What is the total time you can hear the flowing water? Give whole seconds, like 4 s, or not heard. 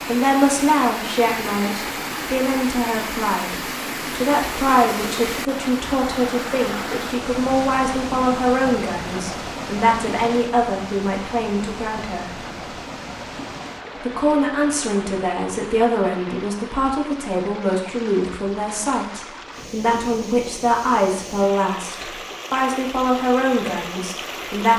25 s.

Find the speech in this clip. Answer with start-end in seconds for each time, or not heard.
0.0-12.3, 13.9-24.7.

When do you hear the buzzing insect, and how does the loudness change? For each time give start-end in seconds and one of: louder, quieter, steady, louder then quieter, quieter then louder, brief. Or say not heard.
not heard.